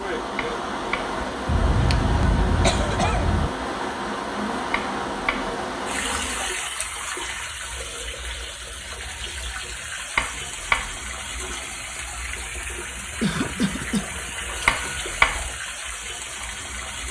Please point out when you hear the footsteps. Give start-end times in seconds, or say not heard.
not heard.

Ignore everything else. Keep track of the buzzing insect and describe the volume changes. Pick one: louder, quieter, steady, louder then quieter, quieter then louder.
steady.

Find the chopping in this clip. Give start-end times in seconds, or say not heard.
0.3-1.1, 4.7-5.5, 10.2-11.0, 14.7-15.5.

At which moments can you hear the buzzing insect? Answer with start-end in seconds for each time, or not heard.
0.0-6.5.